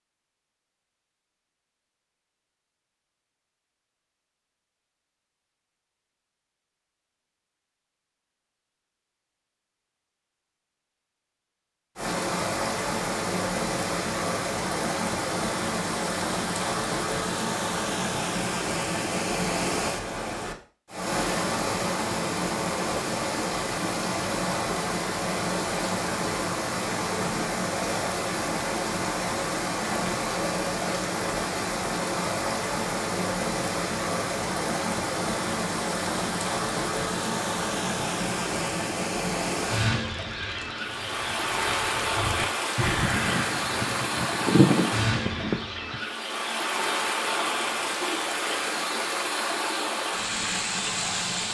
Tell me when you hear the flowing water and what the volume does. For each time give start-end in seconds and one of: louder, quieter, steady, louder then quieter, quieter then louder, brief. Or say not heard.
11.9-51.5 steady.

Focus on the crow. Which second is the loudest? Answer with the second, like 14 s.
45 s.